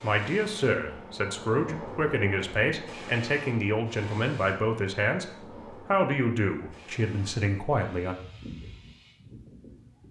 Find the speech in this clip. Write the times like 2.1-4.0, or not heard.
0.0-8.2.